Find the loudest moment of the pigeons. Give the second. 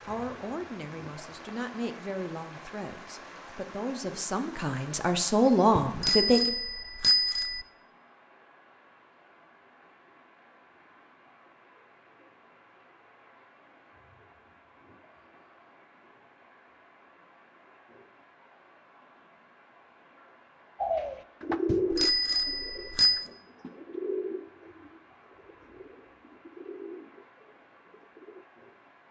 22 s.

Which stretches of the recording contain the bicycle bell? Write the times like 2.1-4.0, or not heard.
5.8-7.6, 21.6-23.2.